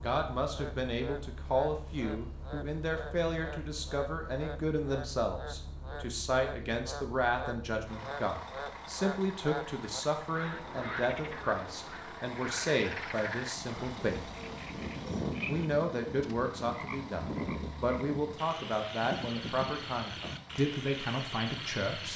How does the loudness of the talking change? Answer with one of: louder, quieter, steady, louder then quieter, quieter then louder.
steady.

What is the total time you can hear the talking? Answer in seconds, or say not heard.
21 s.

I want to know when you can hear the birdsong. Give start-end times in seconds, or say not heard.
not heard.